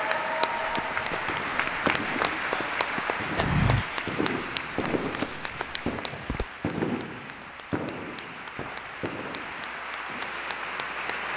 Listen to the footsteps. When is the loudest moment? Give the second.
4 s.